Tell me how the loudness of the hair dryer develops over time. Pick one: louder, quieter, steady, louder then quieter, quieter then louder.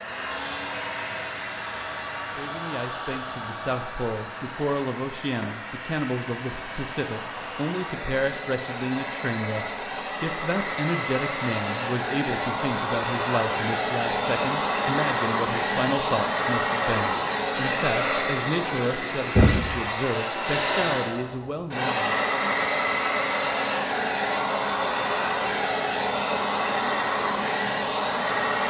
louder.